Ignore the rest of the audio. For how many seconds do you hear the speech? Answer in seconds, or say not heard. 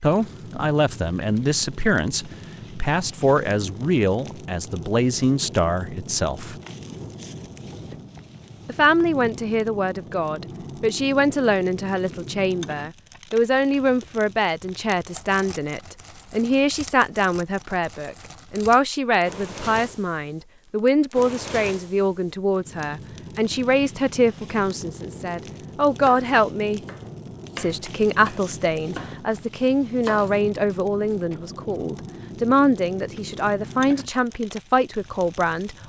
33 s.